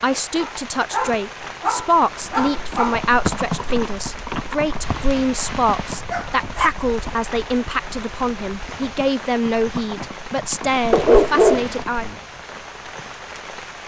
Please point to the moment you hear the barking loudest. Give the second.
11 s.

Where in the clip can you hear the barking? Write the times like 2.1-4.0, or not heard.
0.4-3.0, 4.8-6.7, 10.9-12.2.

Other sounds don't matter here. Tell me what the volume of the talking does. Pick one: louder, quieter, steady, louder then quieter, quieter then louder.
steady.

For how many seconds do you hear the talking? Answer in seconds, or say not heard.
12 s.